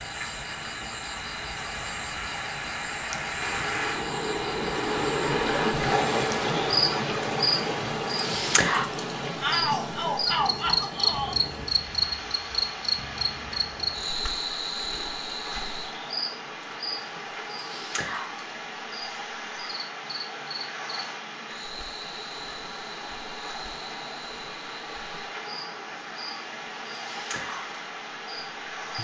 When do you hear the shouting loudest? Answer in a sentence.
The loudest moment of the shouting is at 10 seconds.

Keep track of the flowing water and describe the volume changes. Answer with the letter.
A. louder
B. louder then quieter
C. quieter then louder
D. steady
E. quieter
E.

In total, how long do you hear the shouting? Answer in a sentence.
You can hear the shouting for 2 seconds altogether.